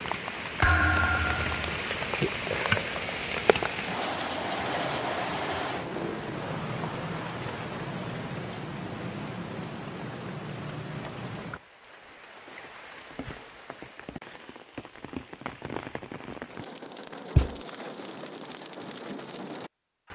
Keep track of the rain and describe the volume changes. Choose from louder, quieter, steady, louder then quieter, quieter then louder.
quieter.